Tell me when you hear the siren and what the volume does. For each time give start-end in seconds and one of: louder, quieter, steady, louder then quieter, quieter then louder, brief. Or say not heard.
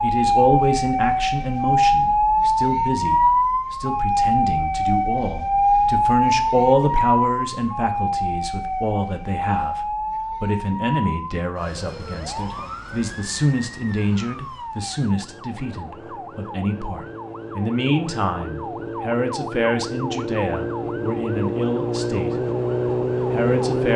0.0-23.9 quieter then louder.